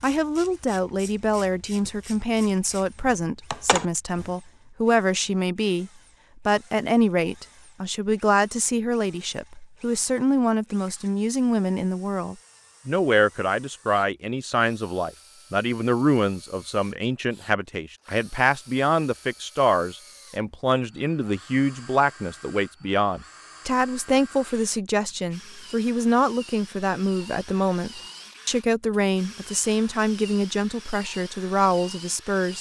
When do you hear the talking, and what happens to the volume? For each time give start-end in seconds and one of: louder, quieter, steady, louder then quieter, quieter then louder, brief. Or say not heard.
0.0-32.5 steady.